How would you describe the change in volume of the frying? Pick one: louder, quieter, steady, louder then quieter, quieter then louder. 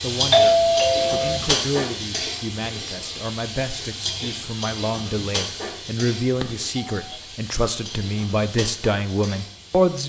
quieter.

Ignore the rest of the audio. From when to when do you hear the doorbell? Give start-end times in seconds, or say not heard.
0.3-1.4, 6.4-7.2.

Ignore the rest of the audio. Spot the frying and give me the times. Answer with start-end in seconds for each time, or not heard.
0.0-10.0.